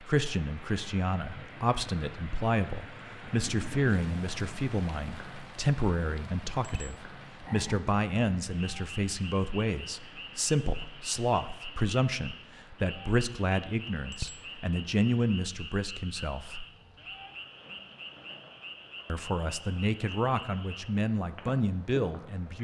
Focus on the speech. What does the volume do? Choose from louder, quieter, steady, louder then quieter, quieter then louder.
steady.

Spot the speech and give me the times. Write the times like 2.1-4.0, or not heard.
0.0-16.6, 19.1-22.5.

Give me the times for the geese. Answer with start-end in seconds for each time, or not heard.
not heard.